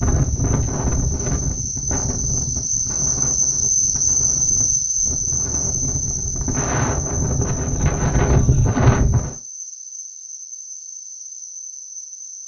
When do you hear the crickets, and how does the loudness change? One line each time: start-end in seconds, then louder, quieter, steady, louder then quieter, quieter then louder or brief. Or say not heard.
0.0-12.4 louder then quieter.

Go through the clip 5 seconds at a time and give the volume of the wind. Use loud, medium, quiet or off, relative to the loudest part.
medium, loud, off.